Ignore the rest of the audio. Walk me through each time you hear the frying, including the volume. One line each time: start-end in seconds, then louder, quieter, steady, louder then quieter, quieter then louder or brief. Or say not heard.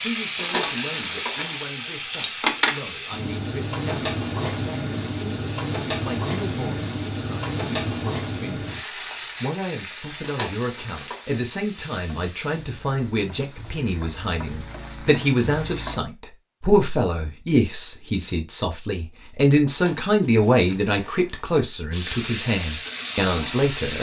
0.0-16.0 quieter
21.9-23.9 brief.